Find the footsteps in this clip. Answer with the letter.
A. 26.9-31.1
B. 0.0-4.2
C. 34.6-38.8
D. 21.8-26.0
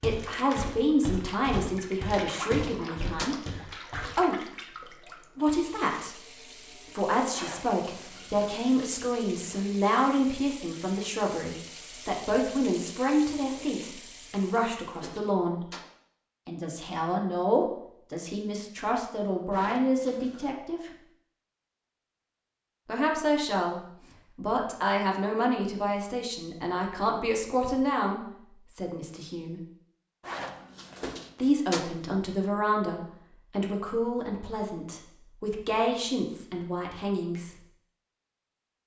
B.